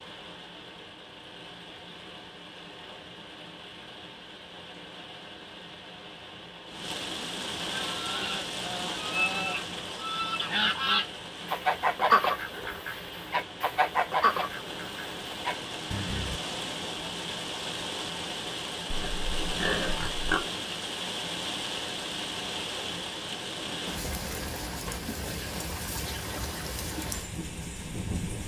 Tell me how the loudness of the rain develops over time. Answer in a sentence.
The loudness of the rain goes up.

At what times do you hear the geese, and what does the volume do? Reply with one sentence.
You can hear the geese from 7.7 to 16.4 s, getting louder then quieter.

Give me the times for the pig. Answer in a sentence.
The pig can be heard from 18.9 to 20.5 s.